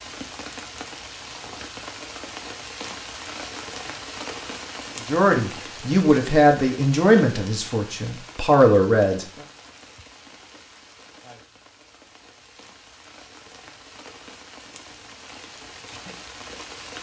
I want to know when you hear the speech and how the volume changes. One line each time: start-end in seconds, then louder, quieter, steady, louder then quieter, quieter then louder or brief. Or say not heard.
5.0-9.2 quieter then louder.